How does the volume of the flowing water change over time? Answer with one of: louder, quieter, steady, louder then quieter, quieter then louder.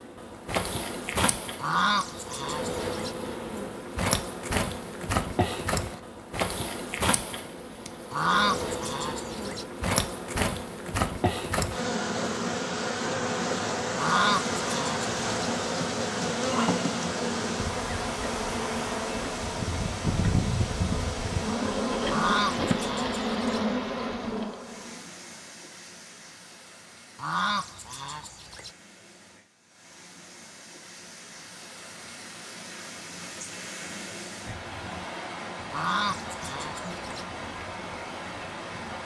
quieter then louder.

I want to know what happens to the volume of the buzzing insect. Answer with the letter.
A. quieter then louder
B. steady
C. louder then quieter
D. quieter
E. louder
B.